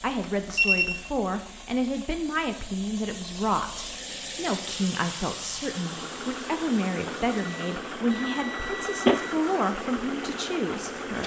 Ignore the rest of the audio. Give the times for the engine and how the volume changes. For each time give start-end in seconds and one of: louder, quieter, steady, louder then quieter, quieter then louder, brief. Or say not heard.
0.0-11.2 louder.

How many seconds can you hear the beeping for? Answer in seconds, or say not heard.
2 s.